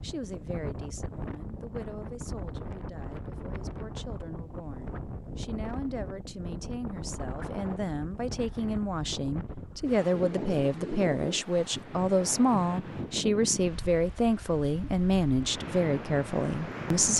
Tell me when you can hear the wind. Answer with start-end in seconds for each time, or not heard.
0.0-17.1.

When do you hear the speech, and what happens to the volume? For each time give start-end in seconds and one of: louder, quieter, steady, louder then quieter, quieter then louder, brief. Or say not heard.
0.0-17.1 louder.